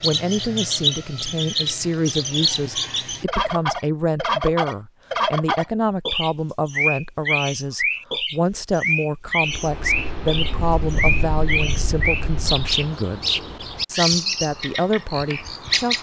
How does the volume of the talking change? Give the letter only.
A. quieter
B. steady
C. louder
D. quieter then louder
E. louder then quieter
B.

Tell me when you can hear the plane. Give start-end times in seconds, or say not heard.
9.4-12.7.